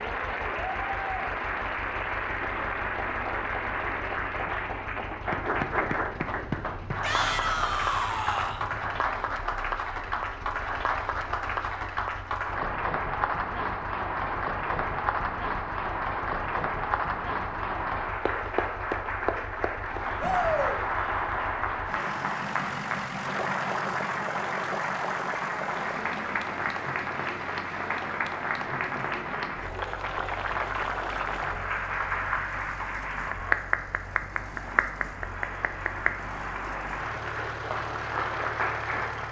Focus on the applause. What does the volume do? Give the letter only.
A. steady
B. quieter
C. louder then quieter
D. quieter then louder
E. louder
A.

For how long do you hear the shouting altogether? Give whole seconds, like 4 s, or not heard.
2 s.